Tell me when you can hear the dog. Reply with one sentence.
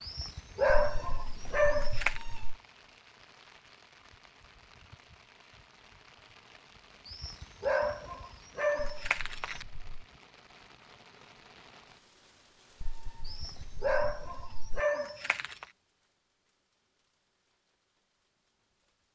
The dog can be heard from 0.0 to 2.2 s, from 7.0 to 9.7 s and from 13.2 to 15.7 s.